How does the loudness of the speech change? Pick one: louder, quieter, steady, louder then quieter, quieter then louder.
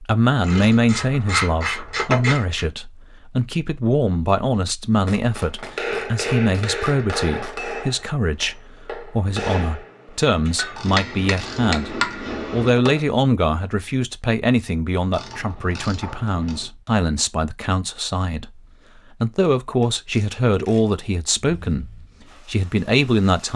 steady.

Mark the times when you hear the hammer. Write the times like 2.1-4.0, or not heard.
5.6-13.1.